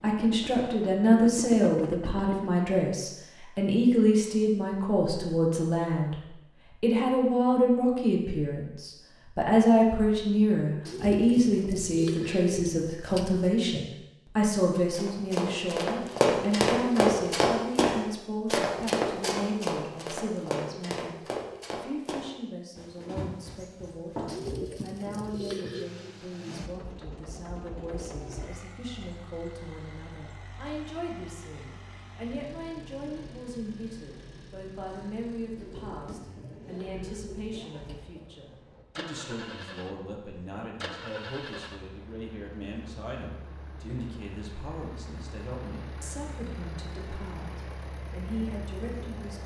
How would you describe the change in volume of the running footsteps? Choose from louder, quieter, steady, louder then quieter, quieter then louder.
quieter.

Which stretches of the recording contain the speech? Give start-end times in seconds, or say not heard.
0.0-49.4.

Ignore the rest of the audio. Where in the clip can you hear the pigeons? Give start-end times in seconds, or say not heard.
10.8-13.6, 24.2-25.9, 35.5-38.3.